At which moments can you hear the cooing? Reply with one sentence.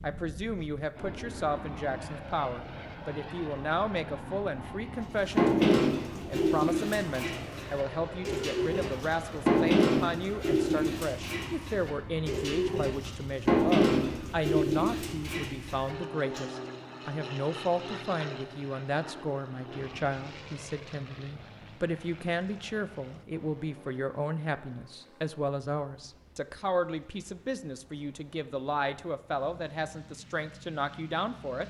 The cooing can be heard from 5.3 to 16.4 s.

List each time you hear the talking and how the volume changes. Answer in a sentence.
You can hear the talking from 0.0 to 31.6 s, at a steady volume.